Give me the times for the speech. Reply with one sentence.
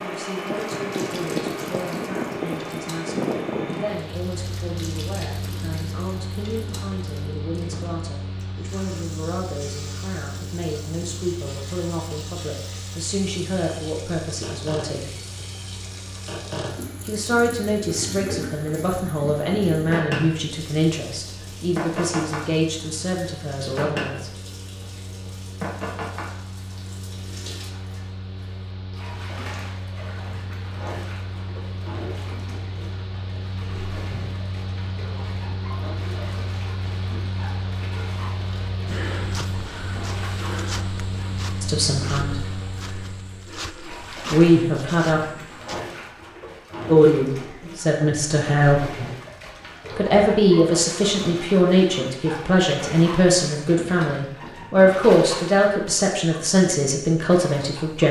You can hear the speech from 0.0 to 15.1 s, from 17.1 to 24.4 s, from 41.6 to 42.4 s, from 44.3 to 45.2 s, from 46.9 to 48.8 s and from 49.9 to 58.0 s.